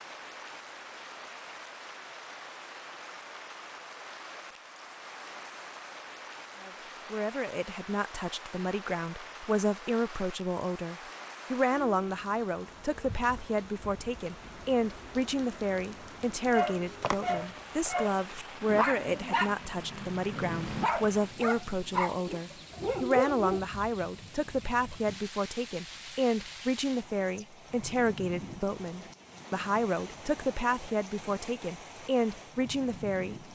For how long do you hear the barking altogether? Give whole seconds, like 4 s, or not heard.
7 s.